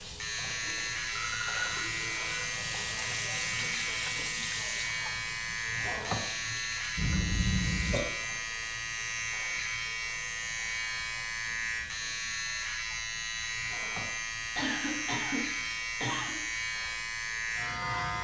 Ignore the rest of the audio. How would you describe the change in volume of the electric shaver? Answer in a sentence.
The volume of the electric shaver stays about the same.